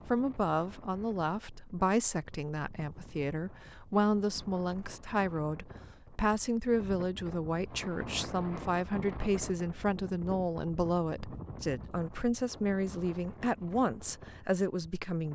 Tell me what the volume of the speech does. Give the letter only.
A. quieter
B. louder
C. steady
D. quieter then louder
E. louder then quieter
C.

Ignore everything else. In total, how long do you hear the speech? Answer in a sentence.
You can hear the speech for 15 seconds altogether.